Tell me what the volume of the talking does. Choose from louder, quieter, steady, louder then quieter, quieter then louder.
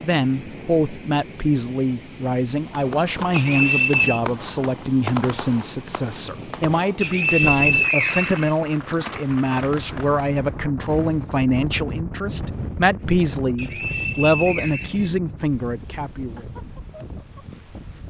steady.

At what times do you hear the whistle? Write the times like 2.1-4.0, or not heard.
3.3-4.2, 7.0-8.9, 13.6-15.1.